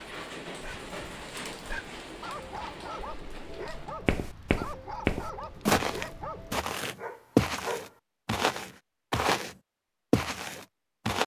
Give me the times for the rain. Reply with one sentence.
The rain can be heard from 0.0 to 6.6 s.